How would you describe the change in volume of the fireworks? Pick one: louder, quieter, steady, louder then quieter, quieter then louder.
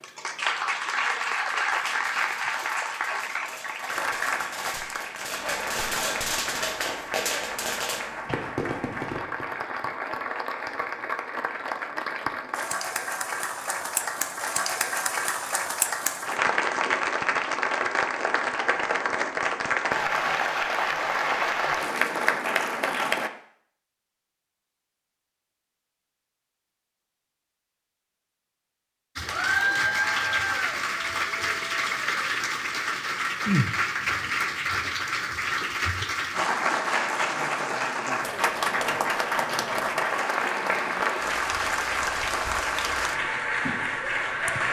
louder.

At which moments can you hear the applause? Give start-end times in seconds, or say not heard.
0.0-23.3, 29.1-44.6.